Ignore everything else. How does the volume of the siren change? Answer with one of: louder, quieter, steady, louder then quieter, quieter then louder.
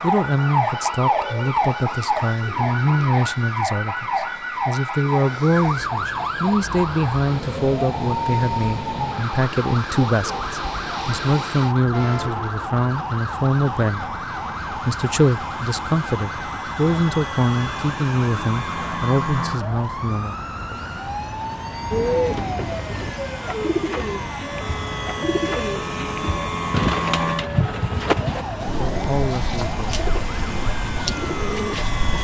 quieter.